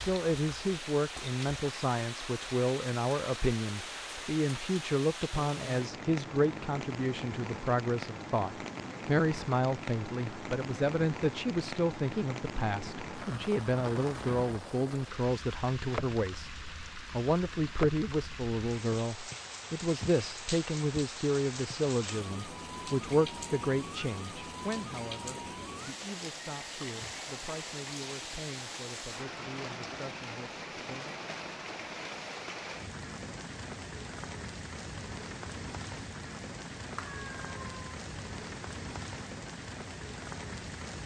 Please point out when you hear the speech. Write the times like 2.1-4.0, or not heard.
0.0-31.2.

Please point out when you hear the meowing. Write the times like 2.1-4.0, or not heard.
37.0-38.0.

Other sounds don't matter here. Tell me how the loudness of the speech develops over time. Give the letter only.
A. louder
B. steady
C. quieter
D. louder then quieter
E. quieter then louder
C.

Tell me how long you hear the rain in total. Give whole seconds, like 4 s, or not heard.
41 s.